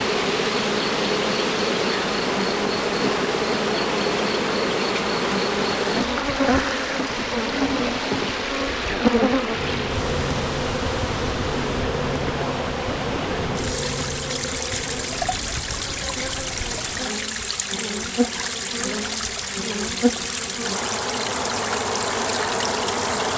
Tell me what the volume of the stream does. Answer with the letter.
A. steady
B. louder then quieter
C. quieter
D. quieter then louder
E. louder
A.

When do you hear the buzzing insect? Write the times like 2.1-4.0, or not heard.
0.0-23.3.